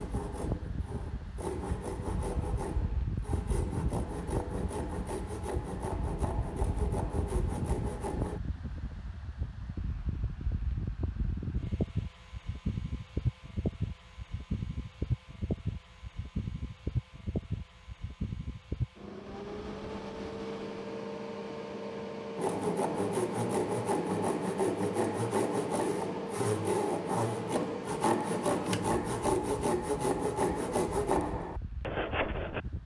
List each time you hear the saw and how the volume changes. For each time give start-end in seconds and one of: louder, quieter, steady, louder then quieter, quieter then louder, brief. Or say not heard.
0.0-8.4 steady
22.4-32.6 steady.